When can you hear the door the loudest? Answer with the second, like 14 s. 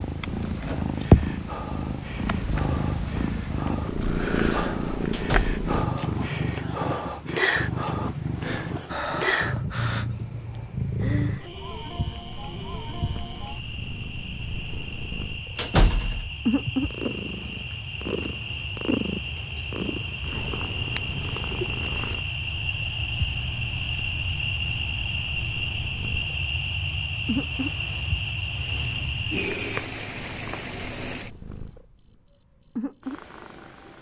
16 s.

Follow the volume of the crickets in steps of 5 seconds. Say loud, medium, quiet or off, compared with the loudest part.
quiet, quiet, medium, medium, loud, loud, loud.